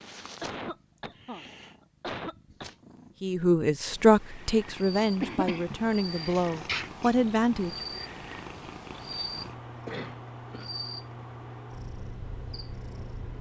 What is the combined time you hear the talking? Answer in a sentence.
You can hear the talking for 5 seconds altogether.